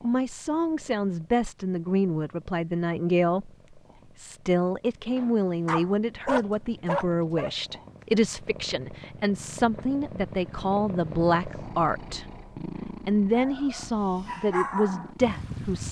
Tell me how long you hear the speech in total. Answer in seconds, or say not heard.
14 s.